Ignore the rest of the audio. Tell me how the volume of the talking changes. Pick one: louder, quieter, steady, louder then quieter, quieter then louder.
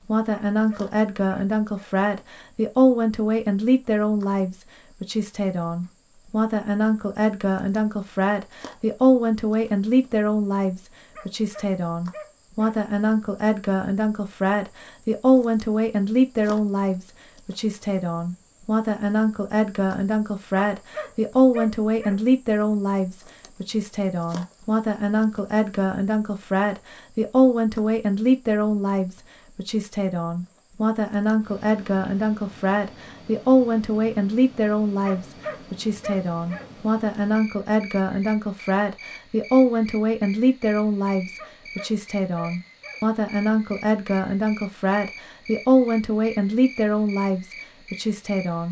steady.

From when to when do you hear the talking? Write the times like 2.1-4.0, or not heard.
0.0-48.6.